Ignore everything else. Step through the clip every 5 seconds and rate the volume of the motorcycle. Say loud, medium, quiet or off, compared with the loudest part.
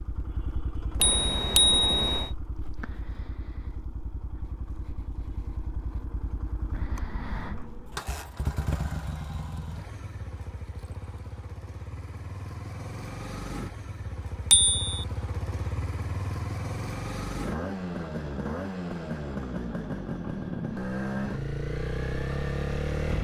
quiet, medium, medium, loud, loud.